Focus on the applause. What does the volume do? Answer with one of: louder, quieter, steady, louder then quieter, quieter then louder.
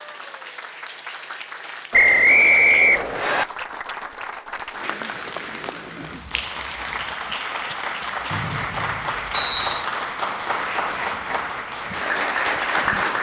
louder.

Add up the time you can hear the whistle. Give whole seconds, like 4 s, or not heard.
3 s.